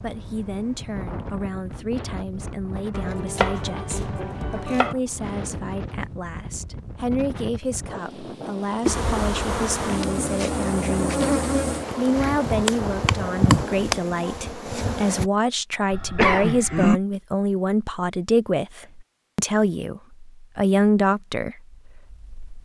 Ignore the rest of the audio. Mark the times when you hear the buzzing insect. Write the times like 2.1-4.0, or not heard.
8.8-15.3.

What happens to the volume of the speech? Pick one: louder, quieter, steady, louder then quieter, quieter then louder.
louder.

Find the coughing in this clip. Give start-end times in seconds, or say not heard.
15.9-17.0.